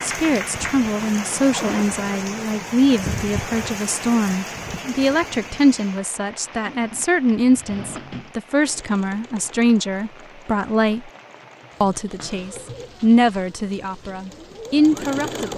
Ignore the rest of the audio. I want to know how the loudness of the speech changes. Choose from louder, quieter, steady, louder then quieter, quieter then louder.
steady.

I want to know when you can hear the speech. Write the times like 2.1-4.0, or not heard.
0.0-11.1, 11.8-15.5.